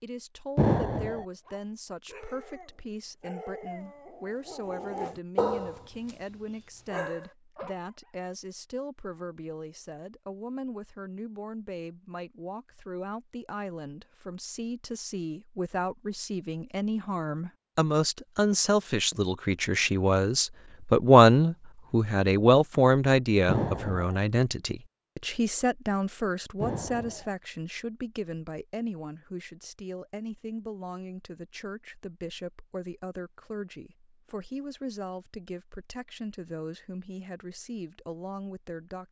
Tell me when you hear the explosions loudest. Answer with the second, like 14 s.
1 s.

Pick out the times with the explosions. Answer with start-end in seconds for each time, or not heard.
0.6-1.2, 23.4-24.1, 26.6-27.3.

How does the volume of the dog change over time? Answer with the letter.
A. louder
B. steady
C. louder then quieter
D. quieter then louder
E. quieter
C.